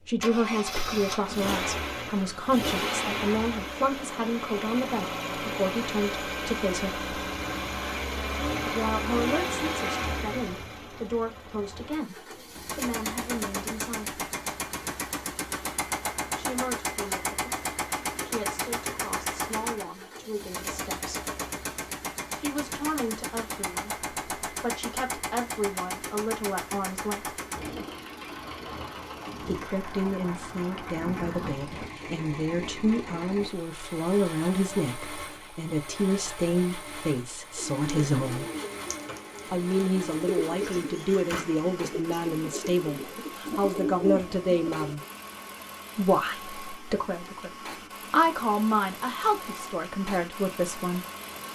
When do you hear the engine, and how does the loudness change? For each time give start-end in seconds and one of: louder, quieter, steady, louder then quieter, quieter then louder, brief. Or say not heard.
0.0-51.5 quieter.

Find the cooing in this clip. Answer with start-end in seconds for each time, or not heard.
37.5-45.0.